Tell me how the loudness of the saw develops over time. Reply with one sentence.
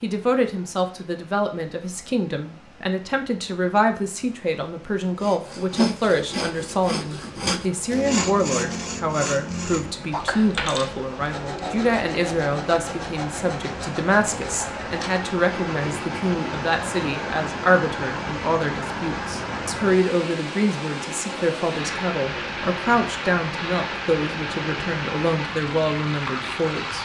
The loudness of the saw goes down.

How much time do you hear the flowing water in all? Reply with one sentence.
The flowing water can be heard for 27 seconds in total.